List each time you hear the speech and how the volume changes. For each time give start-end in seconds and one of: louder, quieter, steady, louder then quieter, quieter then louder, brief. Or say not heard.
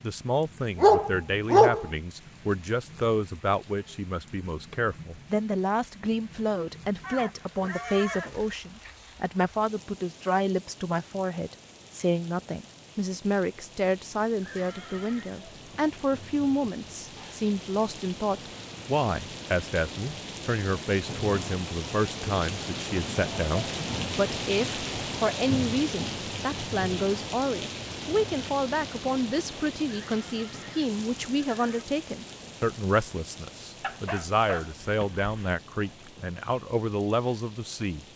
0.0-38.0 steady.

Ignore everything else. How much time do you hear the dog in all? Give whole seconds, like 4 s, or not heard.
3 s.